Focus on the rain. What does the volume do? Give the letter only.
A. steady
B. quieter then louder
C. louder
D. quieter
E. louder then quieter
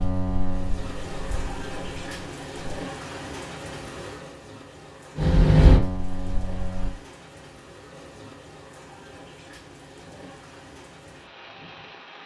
D.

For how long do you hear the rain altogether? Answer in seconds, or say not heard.
12 s.